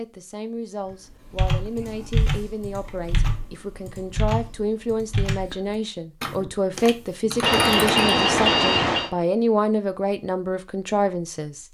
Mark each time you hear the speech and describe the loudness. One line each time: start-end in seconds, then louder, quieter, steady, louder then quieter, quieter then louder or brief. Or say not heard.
0.0-11.6 louder.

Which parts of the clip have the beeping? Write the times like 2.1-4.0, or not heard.
7.4-9.1.